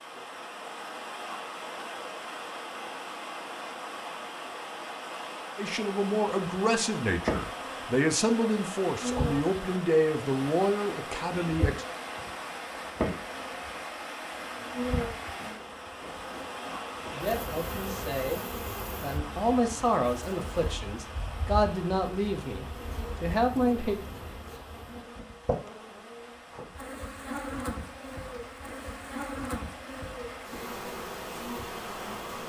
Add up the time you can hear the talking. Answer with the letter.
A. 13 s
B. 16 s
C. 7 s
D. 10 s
A.